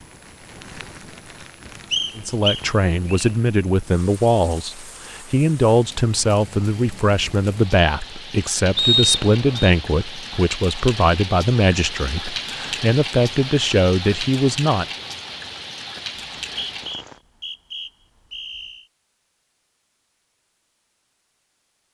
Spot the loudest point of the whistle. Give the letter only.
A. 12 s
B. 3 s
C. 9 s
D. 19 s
C.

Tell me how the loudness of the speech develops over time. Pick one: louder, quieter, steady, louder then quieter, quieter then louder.
steady.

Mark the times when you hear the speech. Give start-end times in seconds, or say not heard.
2.1-14.8.